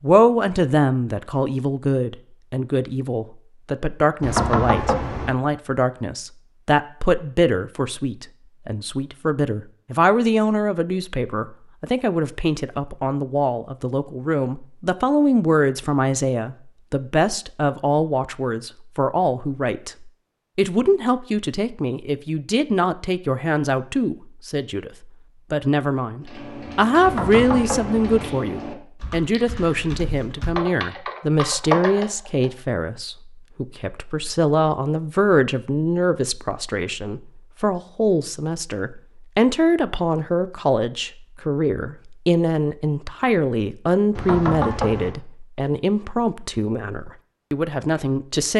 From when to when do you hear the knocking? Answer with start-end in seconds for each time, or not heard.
4.2-5.3, 27.0-28.3, 44.1-45.1.